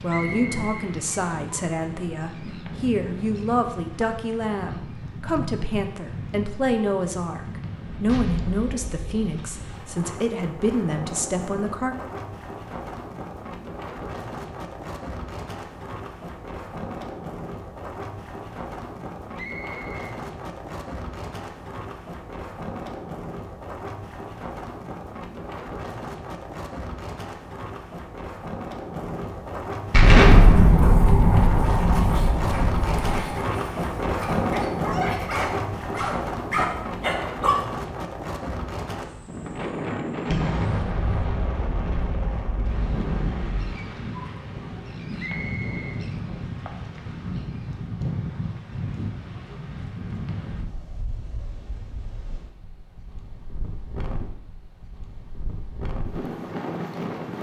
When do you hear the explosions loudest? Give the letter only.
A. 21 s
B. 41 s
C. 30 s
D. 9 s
C.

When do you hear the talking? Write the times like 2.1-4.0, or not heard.
0.0-11.9.